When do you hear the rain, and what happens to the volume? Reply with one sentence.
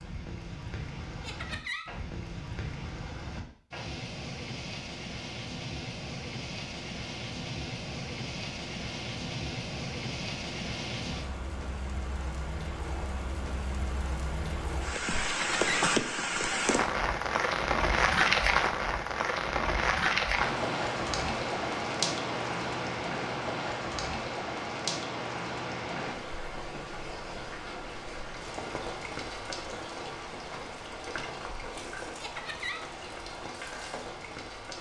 You can hear the rain from 0.0 to 34.7 s, getting louder then quieter.